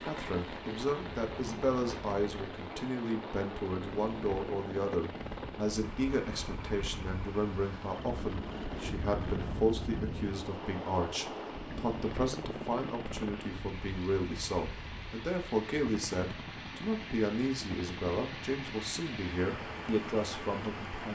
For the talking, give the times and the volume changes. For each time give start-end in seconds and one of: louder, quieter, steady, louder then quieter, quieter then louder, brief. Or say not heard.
0.0-21.0 steady.